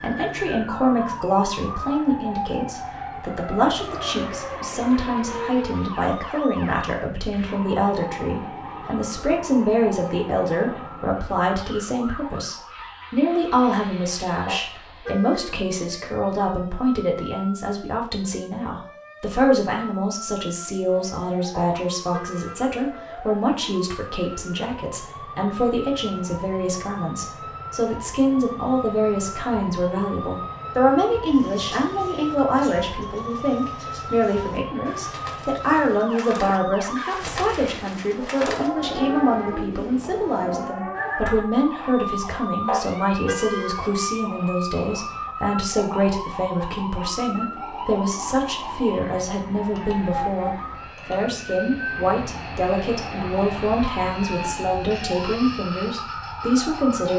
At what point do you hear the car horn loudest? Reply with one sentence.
The volume of the car horn peaks at 43 seconds.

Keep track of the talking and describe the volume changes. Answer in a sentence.
The volume of the talking stays about the same.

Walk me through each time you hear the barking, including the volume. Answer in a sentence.
You can't hear the barking here.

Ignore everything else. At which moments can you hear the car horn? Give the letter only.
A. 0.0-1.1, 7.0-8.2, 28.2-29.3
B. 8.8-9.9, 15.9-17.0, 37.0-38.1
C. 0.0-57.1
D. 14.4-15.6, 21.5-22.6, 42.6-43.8
D.